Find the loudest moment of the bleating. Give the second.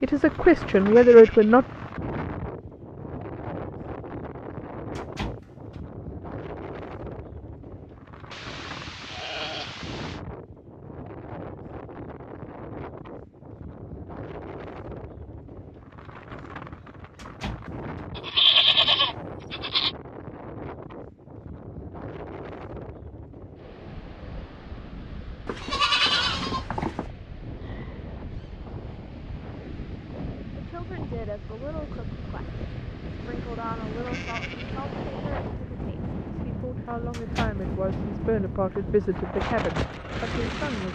19 s.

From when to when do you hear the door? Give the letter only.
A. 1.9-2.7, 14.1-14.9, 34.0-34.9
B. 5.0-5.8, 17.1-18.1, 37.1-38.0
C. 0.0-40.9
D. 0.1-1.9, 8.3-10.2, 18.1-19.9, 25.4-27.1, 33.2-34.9
B.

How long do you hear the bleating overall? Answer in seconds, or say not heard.
9 s.